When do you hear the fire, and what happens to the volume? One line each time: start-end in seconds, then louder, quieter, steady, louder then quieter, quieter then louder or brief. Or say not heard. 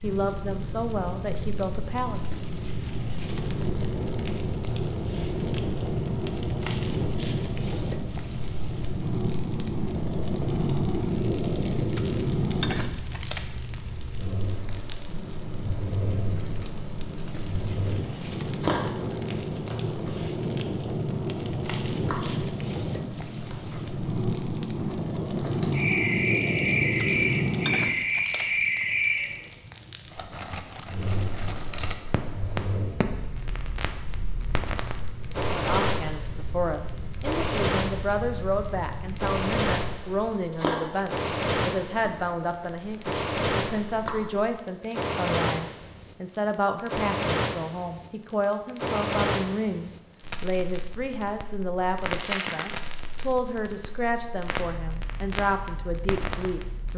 0.0-56.9 steady.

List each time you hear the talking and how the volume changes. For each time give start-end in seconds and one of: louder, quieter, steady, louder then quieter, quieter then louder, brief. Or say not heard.
0.0-2.2 brief
35.5-56.9 steady.